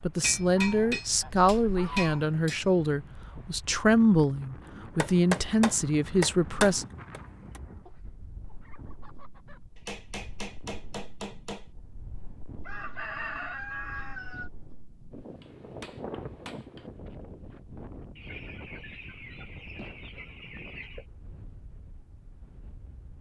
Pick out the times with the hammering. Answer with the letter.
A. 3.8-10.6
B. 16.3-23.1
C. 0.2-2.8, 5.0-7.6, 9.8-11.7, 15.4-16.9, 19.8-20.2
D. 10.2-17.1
C.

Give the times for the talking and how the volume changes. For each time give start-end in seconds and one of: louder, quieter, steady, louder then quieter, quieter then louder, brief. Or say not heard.
0.0-6.8 steady.